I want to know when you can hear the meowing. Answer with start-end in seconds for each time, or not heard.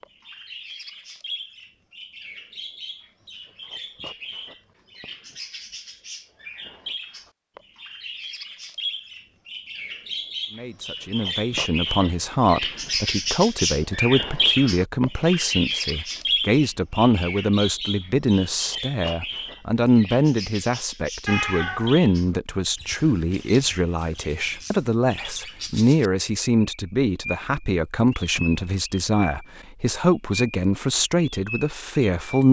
21.2-22.0.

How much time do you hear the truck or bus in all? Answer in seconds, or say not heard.
not heard.